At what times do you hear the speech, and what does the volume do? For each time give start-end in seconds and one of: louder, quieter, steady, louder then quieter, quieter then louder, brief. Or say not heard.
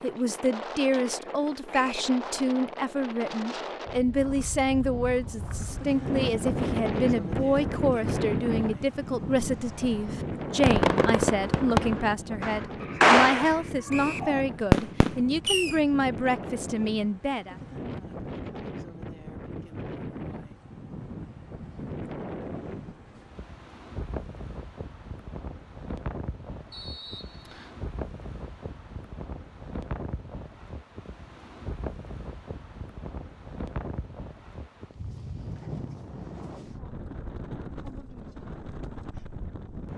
0.0-17.6 steady.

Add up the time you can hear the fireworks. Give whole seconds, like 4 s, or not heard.
6 s.